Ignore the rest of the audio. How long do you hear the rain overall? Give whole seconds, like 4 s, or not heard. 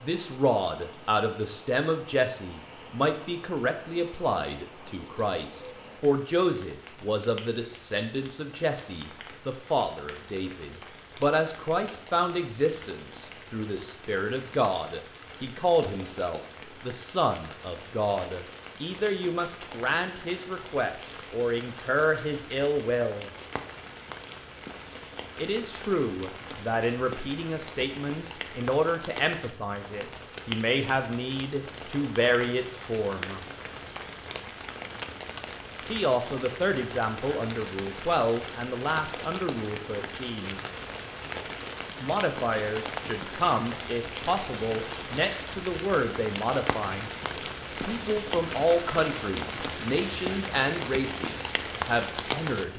53 s.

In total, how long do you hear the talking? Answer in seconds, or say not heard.
47 s.